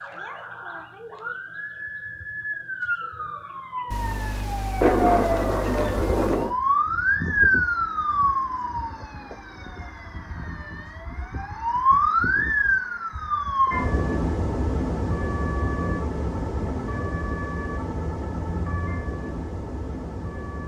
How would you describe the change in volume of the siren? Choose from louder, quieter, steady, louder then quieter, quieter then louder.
louder then quieter.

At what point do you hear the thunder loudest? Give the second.
5 s.